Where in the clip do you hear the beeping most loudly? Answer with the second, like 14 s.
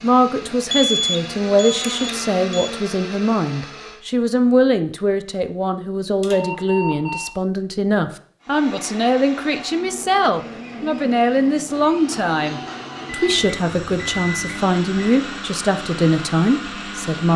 1 s.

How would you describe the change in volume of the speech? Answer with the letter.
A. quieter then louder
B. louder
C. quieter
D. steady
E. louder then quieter
D.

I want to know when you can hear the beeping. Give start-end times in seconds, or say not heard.
0.7-2.7, 6.2-7.3, 13.2-15.1.